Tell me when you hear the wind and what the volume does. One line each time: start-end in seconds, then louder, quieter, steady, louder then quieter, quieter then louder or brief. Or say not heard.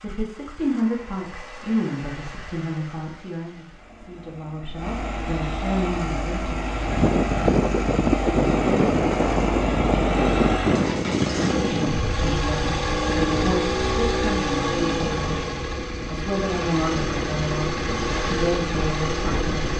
6.7-19.7 quieter.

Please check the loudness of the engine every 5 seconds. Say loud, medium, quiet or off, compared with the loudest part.
quiet, loud, loud, loud.